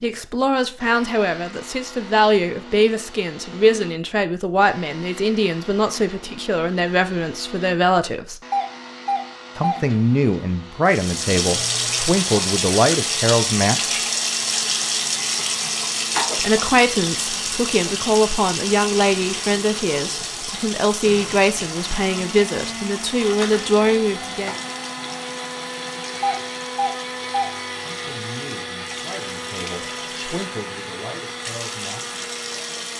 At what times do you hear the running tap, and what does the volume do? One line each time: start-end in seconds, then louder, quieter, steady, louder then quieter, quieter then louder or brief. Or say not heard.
10.8-32.9 quieter.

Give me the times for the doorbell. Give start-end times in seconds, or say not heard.
8.5-9.8, 26.2-27.5.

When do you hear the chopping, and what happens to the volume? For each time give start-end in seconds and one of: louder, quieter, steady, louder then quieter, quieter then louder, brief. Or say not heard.
not heard.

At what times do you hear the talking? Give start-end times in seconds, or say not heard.
0.0-8.4, 9.6-14.0, 16.4-24.6, 27.8-32.2.